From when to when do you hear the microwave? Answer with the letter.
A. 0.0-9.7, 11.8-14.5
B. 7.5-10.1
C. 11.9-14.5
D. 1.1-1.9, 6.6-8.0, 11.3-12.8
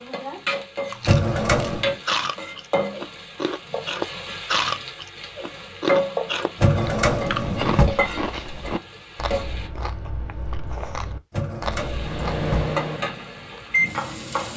C.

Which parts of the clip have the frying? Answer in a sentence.
You can hear the frying from 0.0 to 9.7 s and from 11.8 to 14.5 s.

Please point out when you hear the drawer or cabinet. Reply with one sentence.
You can hear the drawer or cabinet from 1.1 to 1.9 s, from 6.6 to 8.0 s and from 11.3 to 12.8 s.